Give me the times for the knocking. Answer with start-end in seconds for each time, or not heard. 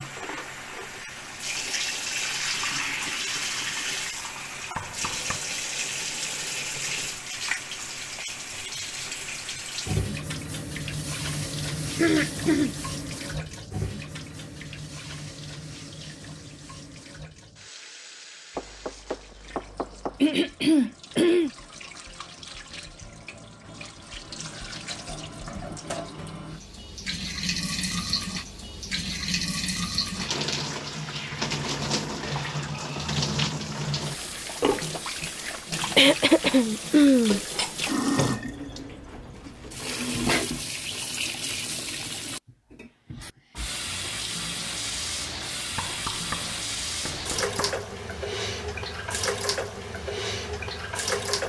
4.8-5.4, 18.6-20.2, 45.8-47.8.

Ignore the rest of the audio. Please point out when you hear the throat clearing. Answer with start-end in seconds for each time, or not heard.
11.9-12.8, 20.2-21.5, 36.0-37.4.